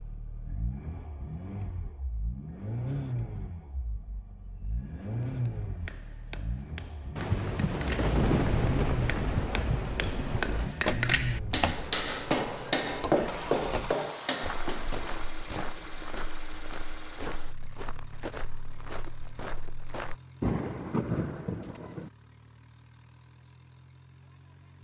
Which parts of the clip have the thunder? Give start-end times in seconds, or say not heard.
7.2-10.8, 20.4-22.1.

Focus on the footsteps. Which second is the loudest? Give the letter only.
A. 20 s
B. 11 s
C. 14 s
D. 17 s
B.